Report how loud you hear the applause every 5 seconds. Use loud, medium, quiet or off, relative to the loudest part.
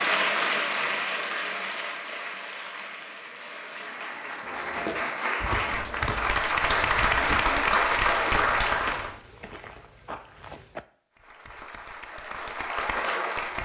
medium, loud, medium.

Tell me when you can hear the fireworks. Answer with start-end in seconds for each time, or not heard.
not heard.